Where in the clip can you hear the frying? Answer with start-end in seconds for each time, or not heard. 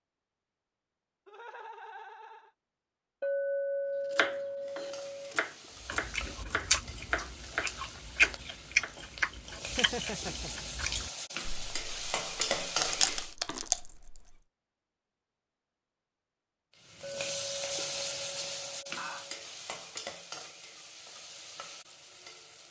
4.6-13.3, 16.8-22.6.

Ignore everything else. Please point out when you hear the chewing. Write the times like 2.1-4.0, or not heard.
5.8-14.3.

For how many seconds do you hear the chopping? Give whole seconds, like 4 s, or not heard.
5 s.